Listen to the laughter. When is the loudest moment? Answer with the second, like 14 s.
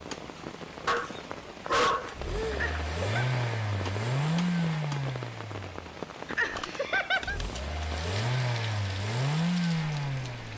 7 s.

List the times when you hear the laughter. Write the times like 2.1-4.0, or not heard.
2.5-3.3, 6.2-7.4.